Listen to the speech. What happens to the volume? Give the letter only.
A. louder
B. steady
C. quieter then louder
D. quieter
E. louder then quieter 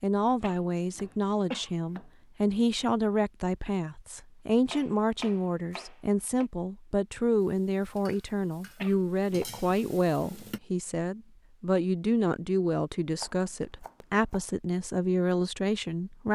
B.